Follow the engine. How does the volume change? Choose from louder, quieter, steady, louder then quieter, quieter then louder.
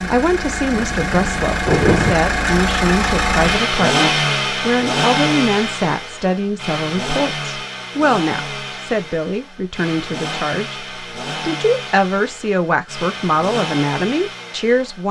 quieter.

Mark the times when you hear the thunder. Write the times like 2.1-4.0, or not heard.
0.7-2.1.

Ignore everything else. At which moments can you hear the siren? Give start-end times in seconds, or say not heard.
not heard.